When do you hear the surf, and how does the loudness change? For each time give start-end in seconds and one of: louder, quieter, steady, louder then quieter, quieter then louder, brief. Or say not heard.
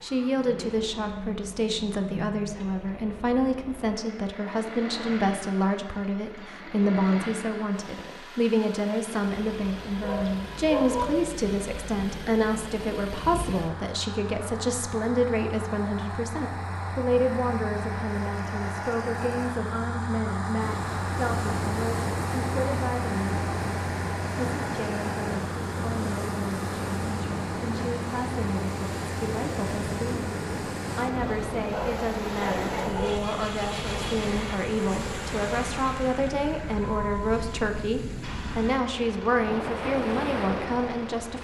20.6-41.3 steady.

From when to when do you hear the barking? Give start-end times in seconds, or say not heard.
10.0-11.2, 31.7-33.3.